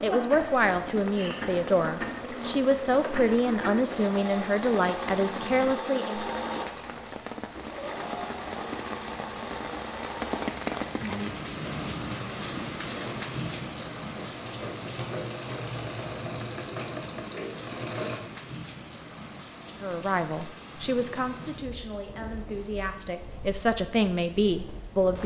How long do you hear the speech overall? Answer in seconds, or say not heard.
12 s.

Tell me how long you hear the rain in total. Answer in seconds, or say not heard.
25 s.